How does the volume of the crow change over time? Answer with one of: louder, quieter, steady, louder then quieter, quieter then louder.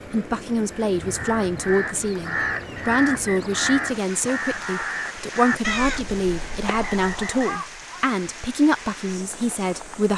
quieter.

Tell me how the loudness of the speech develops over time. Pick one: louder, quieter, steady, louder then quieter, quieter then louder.
steady.